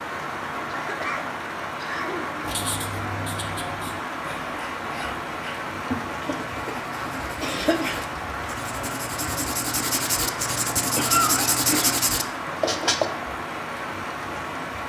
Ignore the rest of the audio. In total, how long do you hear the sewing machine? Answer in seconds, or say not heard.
not heard.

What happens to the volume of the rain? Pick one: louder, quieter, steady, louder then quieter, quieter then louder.
steady.